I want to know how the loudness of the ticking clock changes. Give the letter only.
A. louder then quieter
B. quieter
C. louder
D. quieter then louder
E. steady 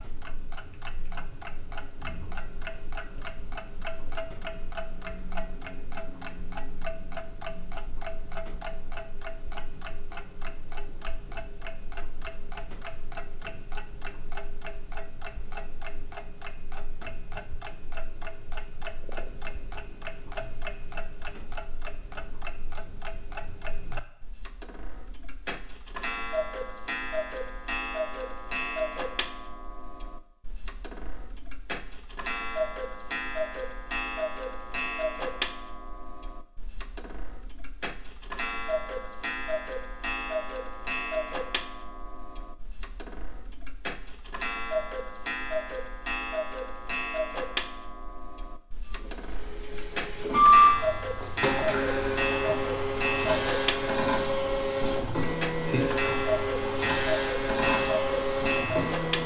C.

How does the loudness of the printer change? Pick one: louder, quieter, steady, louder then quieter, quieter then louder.
quieter.